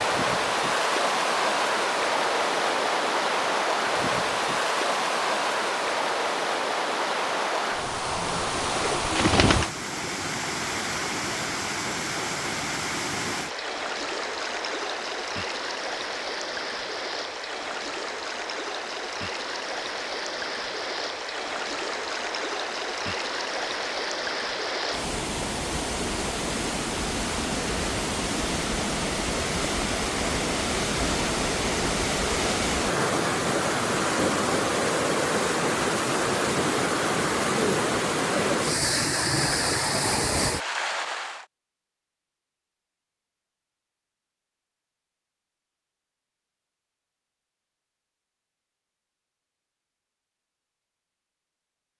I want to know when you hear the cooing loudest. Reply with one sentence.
The loudest moment of the cooing is at 9 seconds.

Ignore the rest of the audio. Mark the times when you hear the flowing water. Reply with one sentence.
You can hear the flowing water from 0.0 to 41.5 s.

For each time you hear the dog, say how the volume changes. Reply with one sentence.
The dog can't be heard in this clip.